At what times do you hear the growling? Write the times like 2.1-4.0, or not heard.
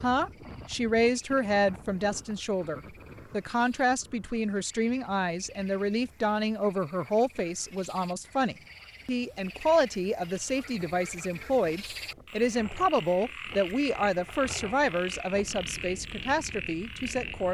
not heard.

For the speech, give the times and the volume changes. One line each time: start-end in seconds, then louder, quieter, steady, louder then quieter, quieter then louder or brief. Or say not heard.
0.0-17.4 steady.